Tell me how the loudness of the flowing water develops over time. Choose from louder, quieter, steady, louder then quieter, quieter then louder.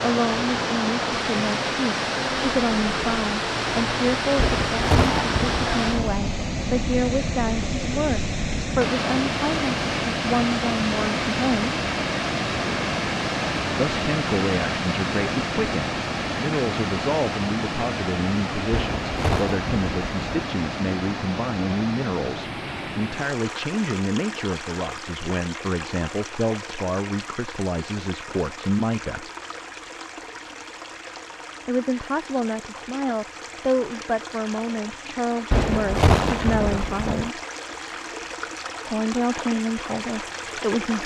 quieter.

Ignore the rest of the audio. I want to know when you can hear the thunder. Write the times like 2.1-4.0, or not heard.
4.3-6.2, 18.7-20.5, 35.5-37.3.